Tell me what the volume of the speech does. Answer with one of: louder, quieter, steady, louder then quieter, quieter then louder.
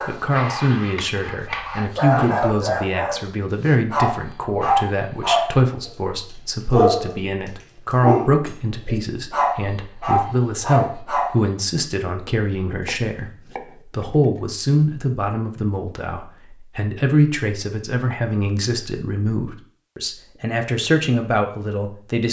steady.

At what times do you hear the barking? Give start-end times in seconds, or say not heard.
0.0-5.9, 6.7-7.2, 8.0-11.3.